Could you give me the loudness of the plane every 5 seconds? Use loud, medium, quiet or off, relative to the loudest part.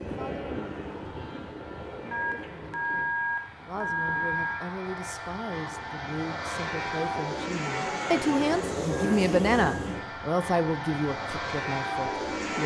medium, loud, loud.